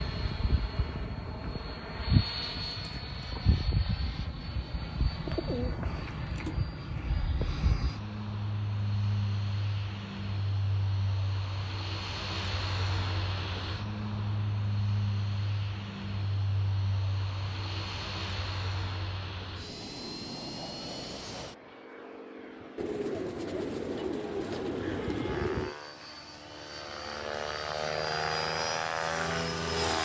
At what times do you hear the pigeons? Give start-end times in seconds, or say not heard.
5.2-6.5, 22.8-25.8.